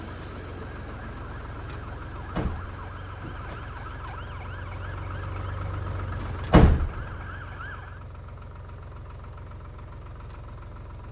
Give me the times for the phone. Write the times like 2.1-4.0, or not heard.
not heard.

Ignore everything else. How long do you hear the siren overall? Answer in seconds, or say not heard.
8 s.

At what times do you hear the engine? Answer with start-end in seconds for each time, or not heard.
0.0-11.0.